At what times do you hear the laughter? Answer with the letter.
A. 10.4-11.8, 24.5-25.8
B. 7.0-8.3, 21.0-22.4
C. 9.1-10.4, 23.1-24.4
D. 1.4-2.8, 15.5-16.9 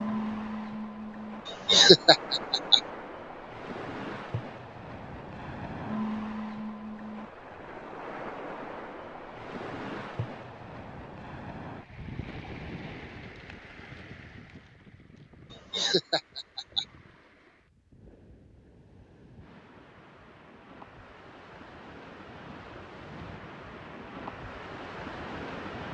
D.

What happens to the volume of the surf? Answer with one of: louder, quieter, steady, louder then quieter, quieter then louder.
quieter then louder.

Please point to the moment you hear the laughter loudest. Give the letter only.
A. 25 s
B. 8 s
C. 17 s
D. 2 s
D.